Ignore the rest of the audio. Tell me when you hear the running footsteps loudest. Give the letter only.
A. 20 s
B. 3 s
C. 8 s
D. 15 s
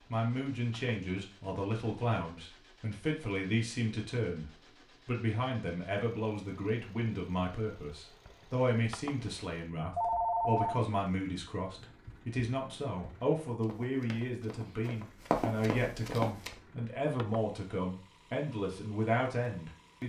D.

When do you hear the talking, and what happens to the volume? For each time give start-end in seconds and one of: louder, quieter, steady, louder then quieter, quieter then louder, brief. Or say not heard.
0.1-20.0 steady.